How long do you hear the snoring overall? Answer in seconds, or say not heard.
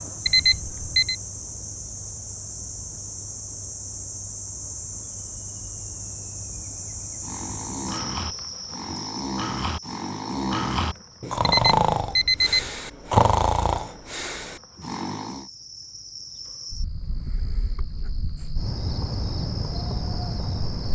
8 s.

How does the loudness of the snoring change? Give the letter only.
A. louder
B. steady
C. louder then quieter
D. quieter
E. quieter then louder
C.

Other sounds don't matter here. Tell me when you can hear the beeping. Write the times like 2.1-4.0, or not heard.
0.2-1.1, 11.4-12.7.